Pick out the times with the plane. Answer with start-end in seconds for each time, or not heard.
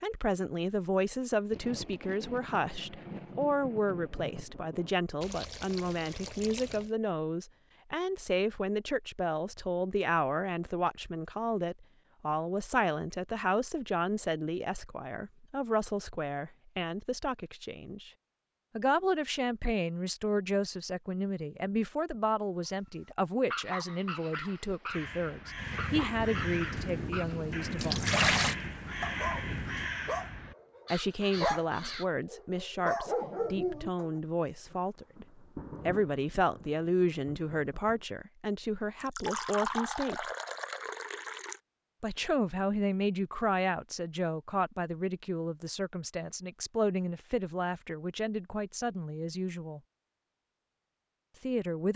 not heard.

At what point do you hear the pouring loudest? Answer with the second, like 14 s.
28 s.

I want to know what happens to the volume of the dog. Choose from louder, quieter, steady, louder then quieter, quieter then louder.
louder.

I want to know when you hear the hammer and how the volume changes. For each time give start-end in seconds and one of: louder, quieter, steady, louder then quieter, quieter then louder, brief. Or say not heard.
not heard.